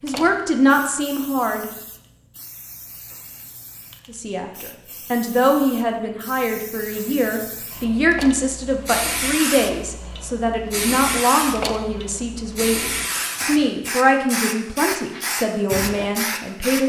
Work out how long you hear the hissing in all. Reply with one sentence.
You can hear the hissing for 17 seconds altogether.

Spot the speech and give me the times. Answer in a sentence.
The speech can be heard from 0.0 to 1.7 s and from 4.0 to 16.8 s.